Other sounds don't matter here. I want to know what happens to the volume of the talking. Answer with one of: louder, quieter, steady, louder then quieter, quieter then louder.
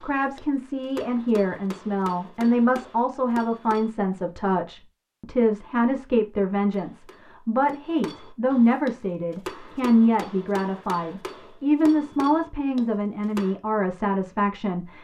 steady.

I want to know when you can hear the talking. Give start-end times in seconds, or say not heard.
0.0-14.9.